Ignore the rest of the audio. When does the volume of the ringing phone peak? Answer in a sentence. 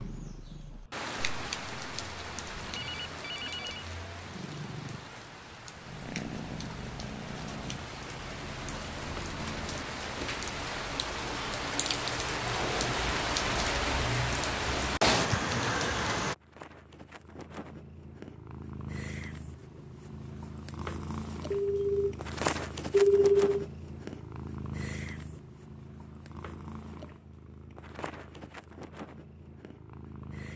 The volume of the ringing phone peaks at 23 seconds.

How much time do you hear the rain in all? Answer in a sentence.
The rain can be heard for 16 seconds in total.